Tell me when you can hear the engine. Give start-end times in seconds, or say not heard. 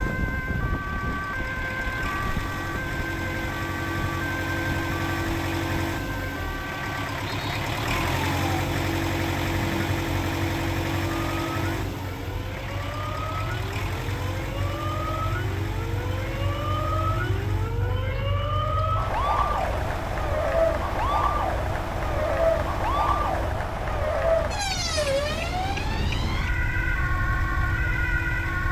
0.0-28.6.